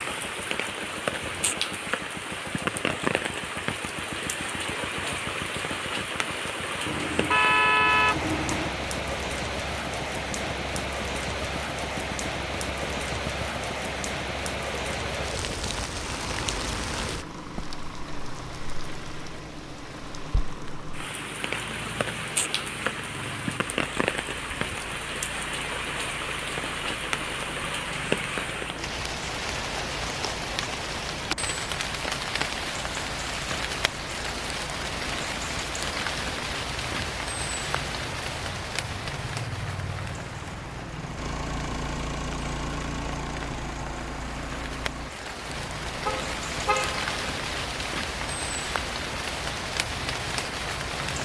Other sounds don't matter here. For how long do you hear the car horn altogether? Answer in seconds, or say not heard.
3 s.